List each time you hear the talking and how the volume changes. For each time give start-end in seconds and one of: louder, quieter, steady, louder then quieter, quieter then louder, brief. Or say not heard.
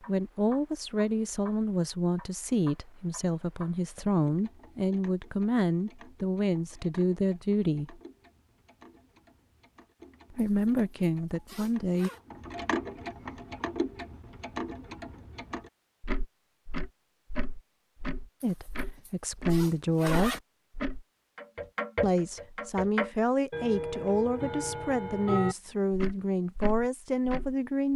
0.1-8.0 steady
10.3-12.1 brief
18.4-20.4 brief
22.0-27.9 steady.